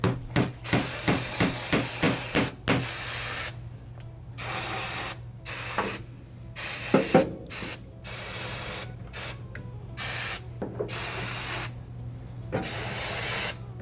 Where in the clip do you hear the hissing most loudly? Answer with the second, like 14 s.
7 s.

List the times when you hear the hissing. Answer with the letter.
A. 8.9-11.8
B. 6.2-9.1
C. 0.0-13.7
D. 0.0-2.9
C.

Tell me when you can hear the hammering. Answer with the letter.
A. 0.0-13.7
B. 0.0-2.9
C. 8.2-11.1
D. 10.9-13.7
B.